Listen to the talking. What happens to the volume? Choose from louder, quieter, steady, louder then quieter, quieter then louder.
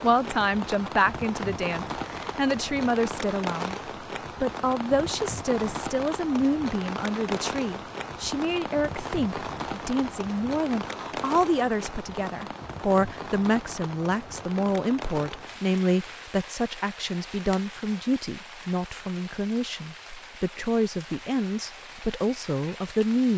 steady.